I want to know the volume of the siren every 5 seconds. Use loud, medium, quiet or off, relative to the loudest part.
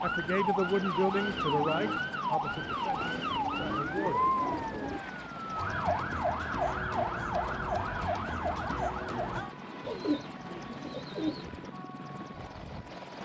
loud, loud, quiet.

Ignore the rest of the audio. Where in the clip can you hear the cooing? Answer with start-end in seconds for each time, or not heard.
3.0-5.0, 9.8-11.5.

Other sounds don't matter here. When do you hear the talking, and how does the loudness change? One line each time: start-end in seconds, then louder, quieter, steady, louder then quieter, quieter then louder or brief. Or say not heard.
0.0-4.3 quieter.